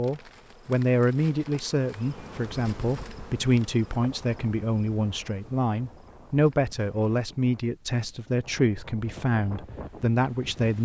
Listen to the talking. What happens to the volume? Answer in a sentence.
The volume of the talking stays about the same.